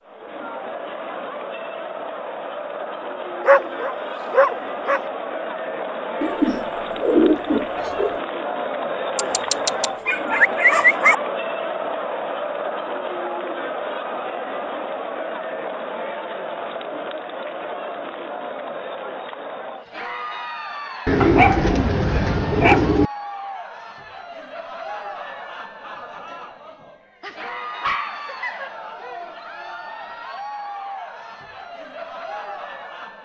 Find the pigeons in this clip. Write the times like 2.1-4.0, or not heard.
6.2-8.2, 21.1-23.1.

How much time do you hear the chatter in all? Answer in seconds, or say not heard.
33 s.